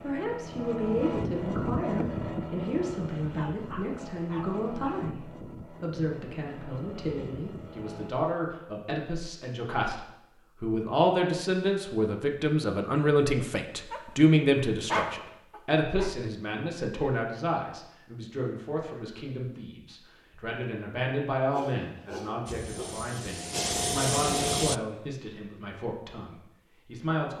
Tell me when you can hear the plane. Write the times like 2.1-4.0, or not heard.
0.0-8.1, 22.4-24.8.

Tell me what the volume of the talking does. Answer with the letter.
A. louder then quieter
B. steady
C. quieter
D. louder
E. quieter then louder
A.